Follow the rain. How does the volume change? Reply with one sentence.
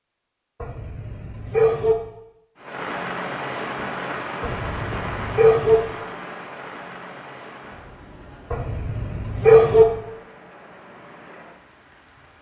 The volume of the rain goes down.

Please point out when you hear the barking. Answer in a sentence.
The barking can be heard from 0.6 to 1.9 s, from 4.4 to 5.8 s and from 8.5 to 9.8 s.